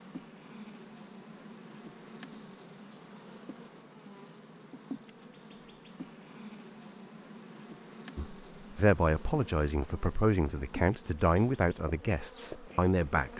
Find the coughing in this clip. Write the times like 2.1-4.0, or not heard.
not heard.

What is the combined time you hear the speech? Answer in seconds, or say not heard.
5 s.